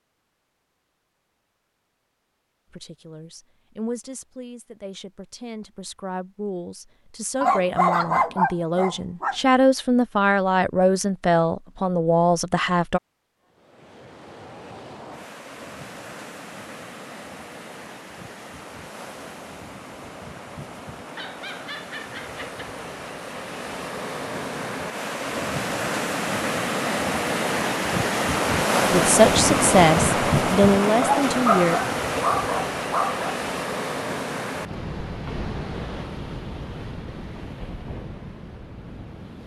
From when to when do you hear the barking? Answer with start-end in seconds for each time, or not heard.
7.4-9.3, 21.1-22.6, 31.0-33.4.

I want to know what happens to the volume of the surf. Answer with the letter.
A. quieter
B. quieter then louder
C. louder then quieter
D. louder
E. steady
C.